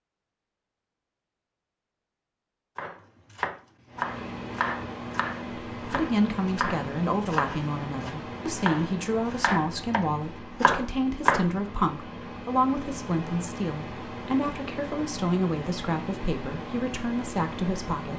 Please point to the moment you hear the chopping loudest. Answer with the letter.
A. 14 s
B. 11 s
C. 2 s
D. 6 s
B.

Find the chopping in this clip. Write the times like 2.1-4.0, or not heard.
2.8-11.5.